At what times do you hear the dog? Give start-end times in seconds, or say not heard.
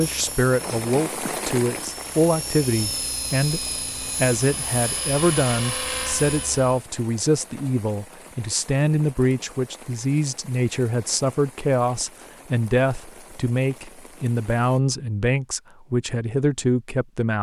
not heard.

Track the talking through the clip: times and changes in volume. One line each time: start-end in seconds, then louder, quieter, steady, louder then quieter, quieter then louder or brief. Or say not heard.
0.0-17.3 steady.